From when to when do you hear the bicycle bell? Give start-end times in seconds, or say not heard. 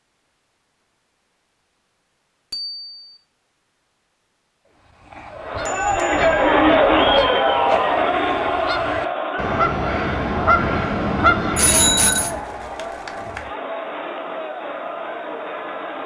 2.5-3.2, 5.5-7.3, 11.3-12.3.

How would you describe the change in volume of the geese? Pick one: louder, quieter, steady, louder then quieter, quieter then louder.
louder.